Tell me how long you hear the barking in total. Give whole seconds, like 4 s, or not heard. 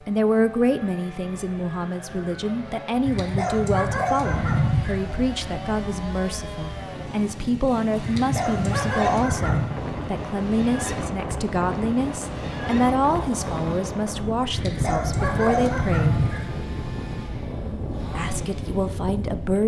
6 s.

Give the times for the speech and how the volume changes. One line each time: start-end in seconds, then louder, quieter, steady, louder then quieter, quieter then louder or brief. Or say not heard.
0.1-16.2 steady
18.1-19.6 brief.